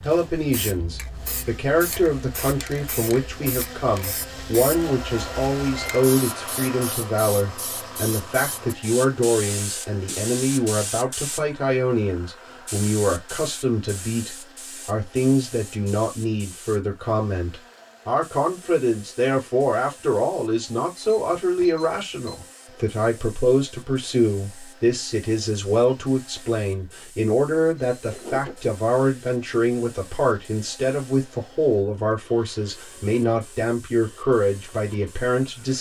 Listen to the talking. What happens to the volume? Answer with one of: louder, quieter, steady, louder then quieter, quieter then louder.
steady.